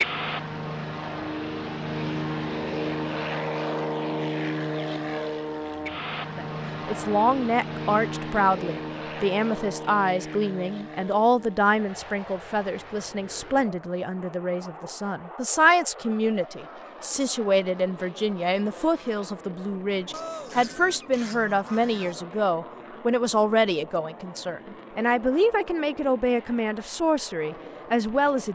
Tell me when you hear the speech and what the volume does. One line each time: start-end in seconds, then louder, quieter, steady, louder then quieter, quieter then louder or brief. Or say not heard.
6.2-28.5 steady.